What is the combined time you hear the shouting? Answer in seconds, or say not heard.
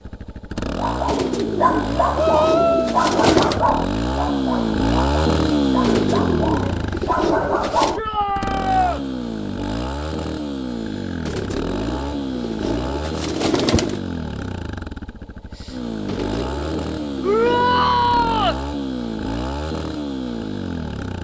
3 s.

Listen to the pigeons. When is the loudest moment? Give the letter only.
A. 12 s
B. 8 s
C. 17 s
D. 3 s
D.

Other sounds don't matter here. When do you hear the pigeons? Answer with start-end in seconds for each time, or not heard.
1.1-3.6, 5.8-8.0, 11.2-14.0, 16.1-17.9.